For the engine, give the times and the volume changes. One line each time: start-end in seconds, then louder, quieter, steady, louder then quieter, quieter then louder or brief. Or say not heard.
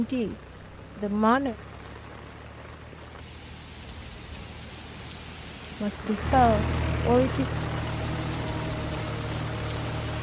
0.0-10.1 louder.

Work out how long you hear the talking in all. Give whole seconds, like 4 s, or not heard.
3 s.